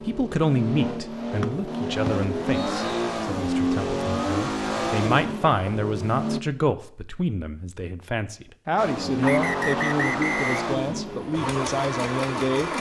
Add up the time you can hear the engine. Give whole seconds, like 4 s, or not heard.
10 s.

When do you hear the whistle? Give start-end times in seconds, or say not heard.
1.4-2.9, 9.2-10.8.